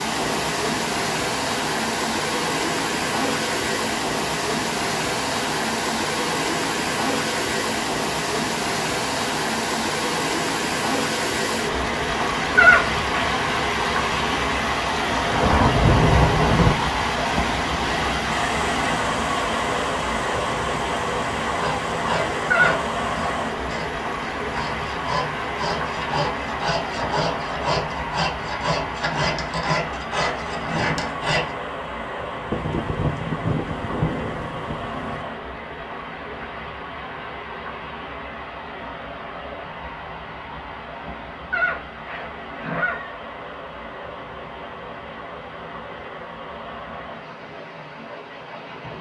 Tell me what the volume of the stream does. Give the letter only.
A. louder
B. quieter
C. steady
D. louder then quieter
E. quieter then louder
B.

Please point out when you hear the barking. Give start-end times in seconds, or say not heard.
not heard.